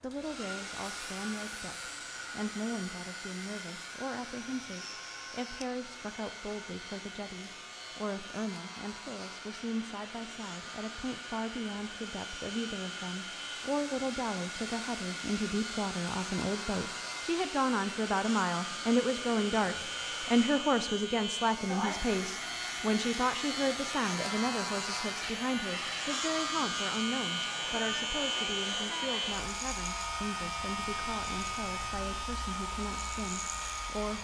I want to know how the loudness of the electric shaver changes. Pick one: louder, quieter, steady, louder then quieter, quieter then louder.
louder.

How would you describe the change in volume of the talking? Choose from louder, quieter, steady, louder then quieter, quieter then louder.
louder then quieter.